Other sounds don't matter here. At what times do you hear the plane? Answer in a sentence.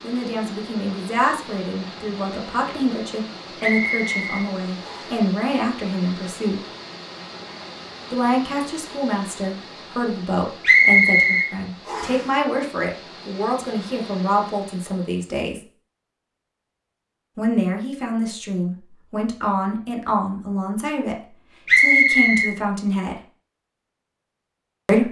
You can't hear the plane here.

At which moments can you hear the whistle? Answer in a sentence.
The whistle can be heard from 3.6 to 5.2 s, from 10.6 to 12.2 s and from 21.6 to 22.5 s.